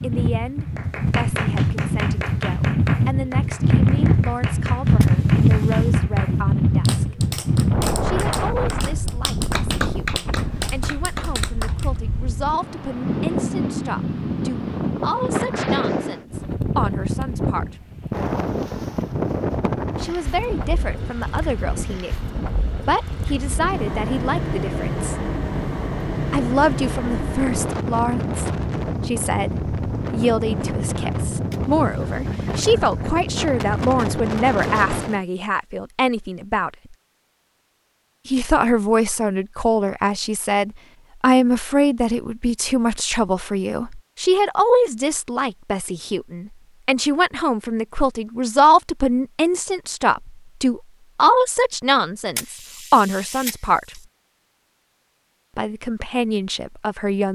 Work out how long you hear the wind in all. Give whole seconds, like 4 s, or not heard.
35 s.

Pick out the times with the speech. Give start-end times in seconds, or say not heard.
0.0-7.2, 8.0-17.9, 19.9-25.1, 26.3-36.7, 38.2-54.0, 55.5-57.2.